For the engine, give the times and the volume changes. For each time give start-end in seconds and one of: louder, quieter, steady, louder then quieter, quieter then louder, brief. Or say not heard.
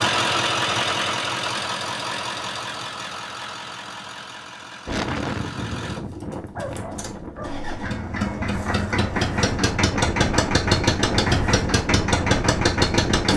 0.0-13.3 quieter then louder.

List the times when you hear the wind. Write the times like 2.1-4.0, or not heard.
4.8-13.3.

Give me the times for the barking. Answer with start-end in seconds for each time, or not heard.
6.1-7.7.